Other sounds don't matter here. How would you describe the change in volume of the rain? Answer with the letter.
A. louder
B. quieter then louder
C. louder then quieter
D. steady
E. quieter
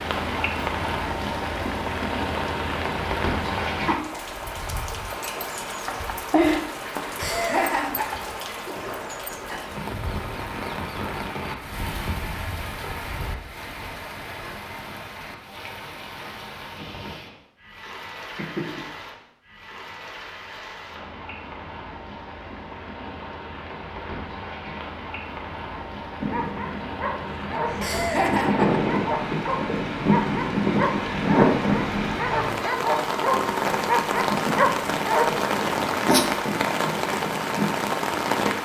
B.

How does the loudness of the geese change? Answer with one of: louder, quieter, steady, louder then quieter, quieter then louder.
louder then quieter.